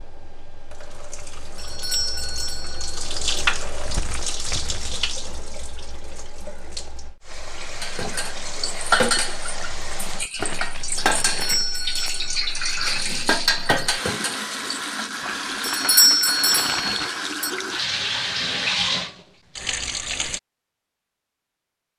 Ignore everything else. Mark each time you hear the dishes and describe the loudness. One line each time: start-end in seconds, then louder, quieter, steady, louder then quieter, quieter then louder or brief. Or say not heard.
7.8-14.9 quieter then louder.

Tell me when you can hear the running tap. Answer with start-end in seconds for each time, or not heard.
0.0-20.4.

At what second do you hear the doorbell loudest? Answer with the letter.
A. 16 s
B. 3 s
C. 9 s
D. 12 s
A.